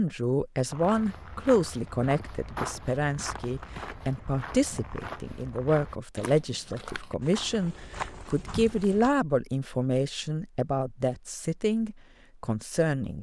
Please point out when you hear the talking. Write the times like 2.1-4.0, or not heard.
0.0-13.1.